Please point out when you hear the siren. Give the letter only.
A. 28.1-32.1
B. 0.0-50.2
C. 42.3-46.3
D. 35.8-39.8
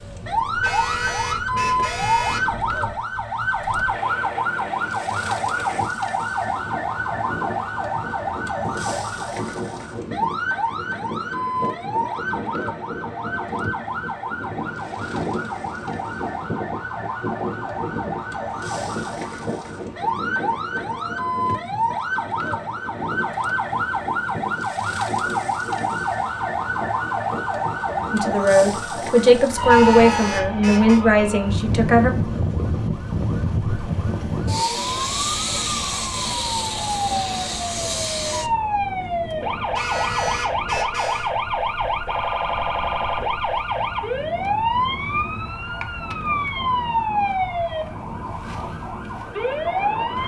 B.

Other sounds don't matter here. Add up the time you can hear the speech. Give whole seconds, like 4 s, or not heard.
4 s.